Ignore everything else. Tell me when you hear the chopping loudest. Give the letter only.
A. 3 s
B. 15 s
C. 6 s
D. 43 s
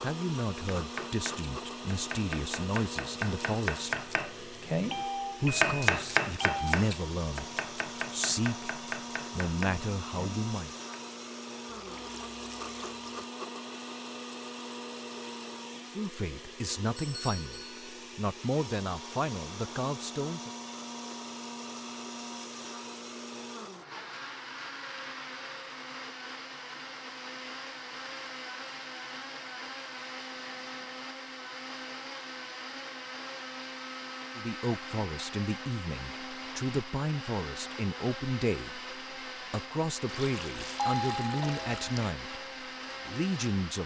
C.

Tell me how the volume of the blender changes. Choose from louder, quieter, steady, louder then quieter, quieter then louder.
steady.